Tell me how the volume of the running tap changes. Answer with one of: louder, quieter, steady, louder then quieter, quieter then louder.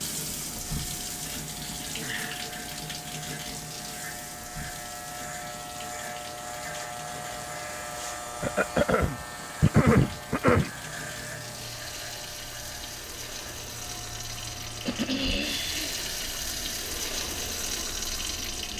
quieter then louder.